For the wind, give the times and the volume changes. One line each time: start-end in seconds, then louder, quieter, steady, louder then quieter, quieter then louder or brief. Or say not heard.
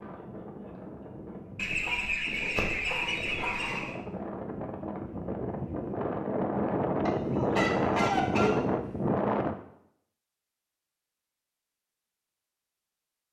0.0-9.6 louder.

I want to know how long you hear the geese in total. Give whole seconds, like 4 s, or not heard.
4 s.